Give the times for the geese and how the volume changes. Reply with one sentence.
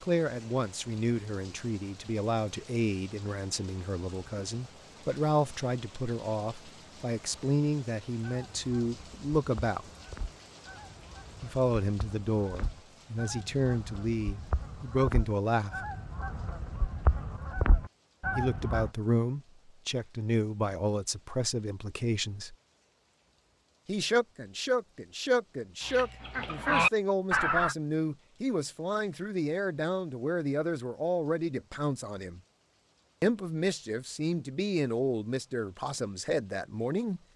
You can hear the geese from 8.2 to 18.9 s, getting louder; and briefly from 25.9 to 27.8 s.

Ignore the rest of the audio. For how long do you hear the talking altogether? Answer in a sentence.
You can hear the talking for 31 seconds altogether.